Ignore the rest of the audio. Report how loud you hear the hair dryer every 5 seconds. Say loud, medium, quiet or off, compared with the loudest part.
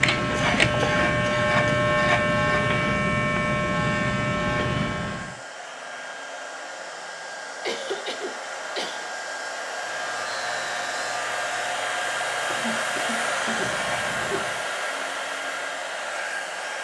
medium, medium, loud, loud.